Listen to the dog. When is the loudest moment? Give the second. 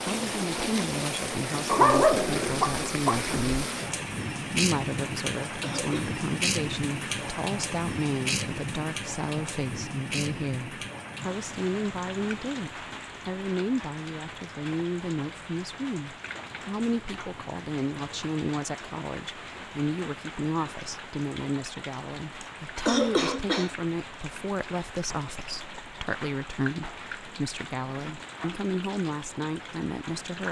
2 s.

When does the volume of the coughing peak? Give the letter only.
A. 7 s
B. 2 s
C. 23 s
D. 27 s
C.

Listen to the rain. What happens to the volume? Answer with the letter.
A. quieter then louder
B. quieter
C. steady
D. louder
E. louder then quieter
B.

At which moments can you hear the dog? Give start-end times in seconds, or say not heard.
1.6-3.4.